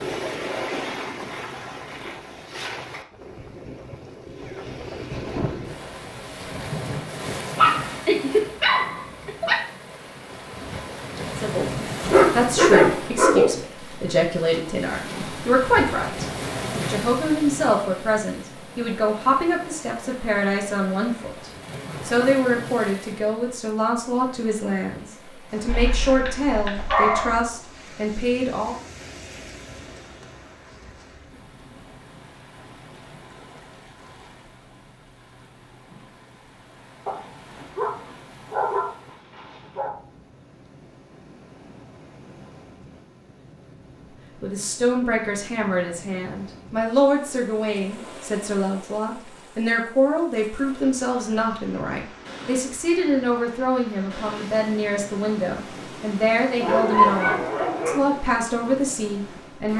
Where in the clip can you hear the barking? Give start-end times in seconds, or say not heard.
7.5-9.6, 12.1-13.5, 25.6-27.4, 37.0-39.9, 56.6-58.0.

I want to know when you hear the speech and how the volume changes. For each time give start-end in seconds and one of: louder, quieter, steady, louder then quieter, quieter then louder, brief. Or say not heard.
11.3-28.8 steady
44.4-59.7 steady.